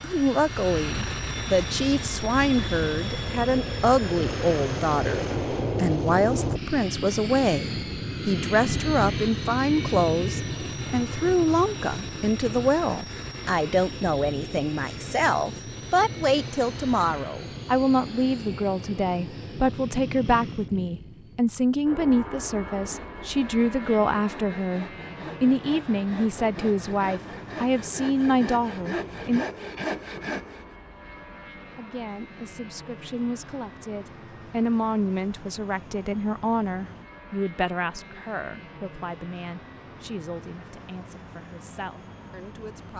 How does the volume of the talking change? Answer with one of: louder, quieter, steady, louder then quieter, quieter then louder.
quieter.